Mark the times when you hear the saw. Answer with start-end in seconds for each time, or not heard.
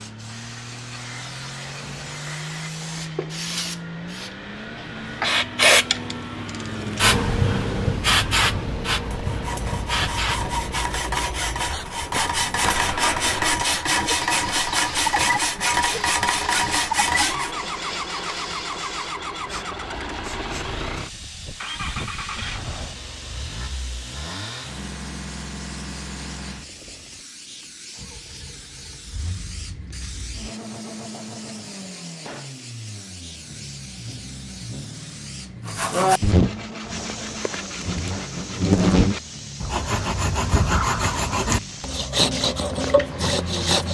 9.1-17.6, 35.6-43.9.